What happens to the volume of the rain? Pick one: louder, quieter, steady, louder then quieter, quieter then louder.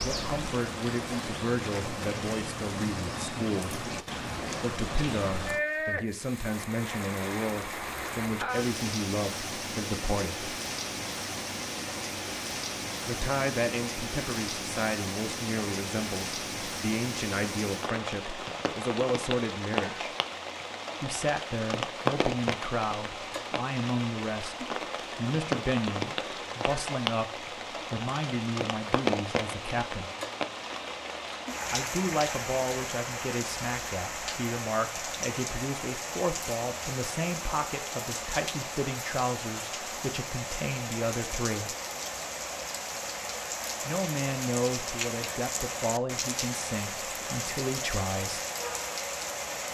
steady.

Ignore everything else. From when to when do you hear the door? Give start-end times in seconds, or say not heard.
not heard.